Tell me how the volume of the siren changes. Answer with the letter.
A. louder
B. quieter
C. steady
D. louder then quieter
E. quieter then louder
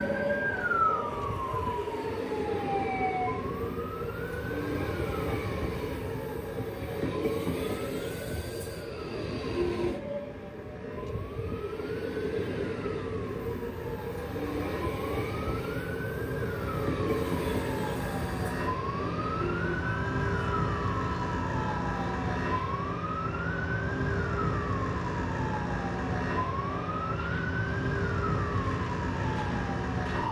E.